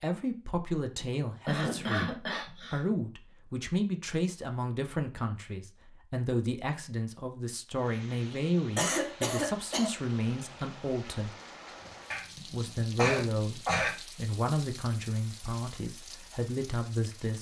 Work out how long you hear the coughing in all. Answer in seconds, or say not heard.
5 s.